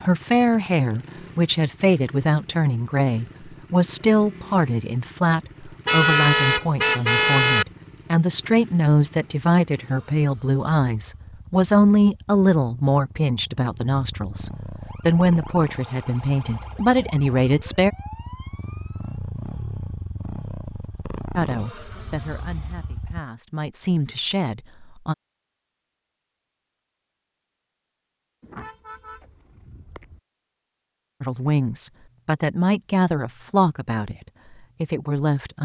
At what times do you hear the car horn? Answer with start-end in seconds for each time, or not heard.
5.8-7.7, 28.4-30.2.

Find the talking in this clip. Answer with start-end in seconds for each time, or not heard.
0.0-17.9, 21.4-25.1, 31.2-34.1, 34.8-35.5.